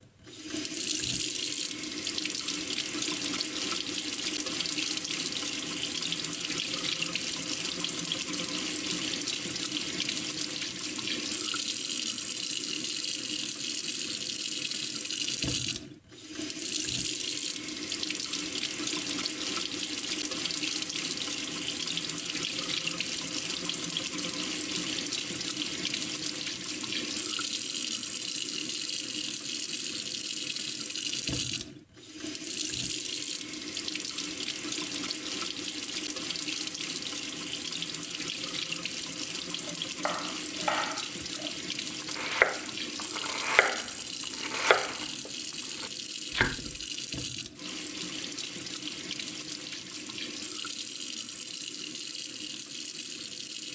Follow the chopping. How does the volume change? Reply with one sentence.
The volume of the chopping goes up, then down.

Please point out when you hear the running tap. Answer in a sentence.
You can hear the running tap from 0.0 to 53.7 s.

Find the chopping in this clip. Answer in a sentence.
You can hear the chopping from 39.6 to 46.8 s.